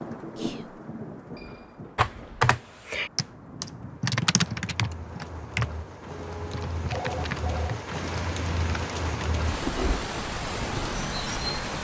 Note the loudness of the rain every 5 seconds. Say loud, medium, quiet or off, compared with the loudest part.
medium, loud, loud.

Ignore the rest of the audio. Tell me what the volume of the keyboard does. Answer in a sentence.
The loudness of the keyboard goes down.